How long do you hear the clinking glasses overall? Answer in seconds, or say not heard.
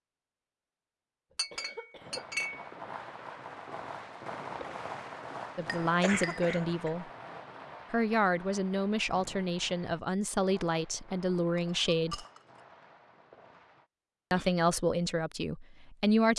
3 s.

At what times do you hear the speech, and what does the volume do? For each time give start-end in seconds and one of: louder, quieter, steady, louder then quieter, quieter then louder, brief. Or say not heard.
5.5-7.0 brief
7.9-12.2 steady
14.3-16.3 brief.